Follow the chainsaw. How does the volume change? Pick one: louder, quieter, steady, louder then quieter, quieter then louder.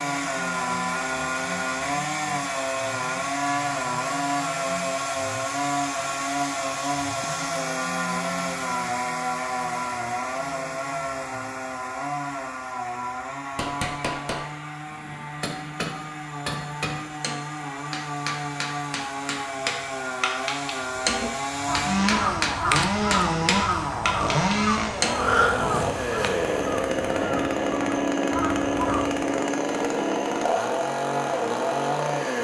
quieter then louder.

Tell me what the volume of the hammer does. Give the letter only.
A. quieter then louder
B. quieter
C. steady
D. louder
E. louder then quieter
D.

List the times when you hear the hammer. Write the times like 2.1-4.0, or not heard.
13.6-25.2.